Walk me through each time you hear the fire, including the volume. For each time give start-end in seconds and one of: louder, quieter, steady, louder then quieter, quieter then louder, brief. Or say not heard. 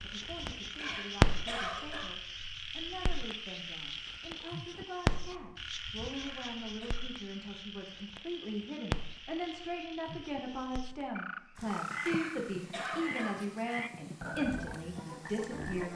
0.0-15.9 quieter.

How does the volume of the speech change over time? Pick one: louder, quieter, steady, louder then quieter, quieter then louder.
louder.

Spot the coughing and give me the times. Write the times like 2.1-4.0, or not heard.
0.8-2.0, 6.1-6.9, 12.1-13.3.